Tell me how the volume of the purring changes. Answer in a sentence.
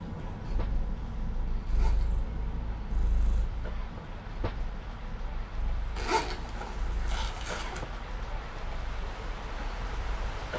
The loudness of the purring goes down.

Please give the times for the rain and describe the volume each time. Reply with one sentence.
You can hear the rain from 0.0 to 10.5 s, getting louder.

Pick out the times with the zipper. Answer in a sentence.
The zipper can be heard from 1.6 to 2.2 s and from 6.0 to 7.8 s.